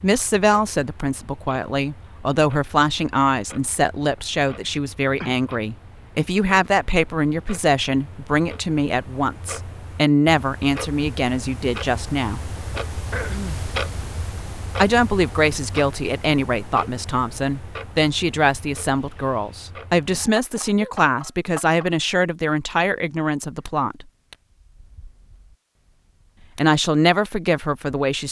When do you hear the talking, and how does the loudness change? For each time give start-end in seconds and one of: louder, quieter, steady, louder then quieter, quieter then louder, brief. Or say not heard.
0.0-12.4 steady
14.8-24.1 steady
26.6-28.2 brief.